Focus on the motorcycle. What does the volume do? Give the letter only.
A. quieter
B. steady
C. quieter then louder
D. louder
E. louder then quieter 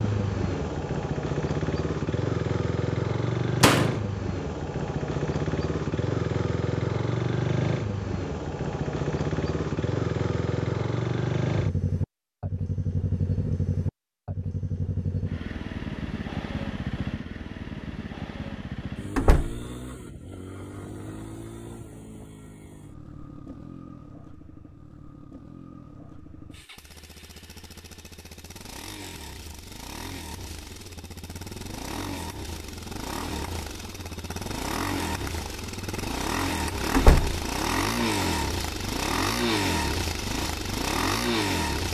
C.